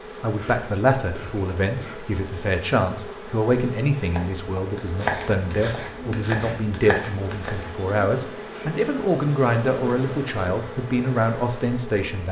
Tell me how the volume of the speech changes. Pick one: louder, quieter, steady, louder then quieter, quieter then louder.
steady.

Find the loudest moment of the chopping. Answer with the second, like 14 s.
5 s.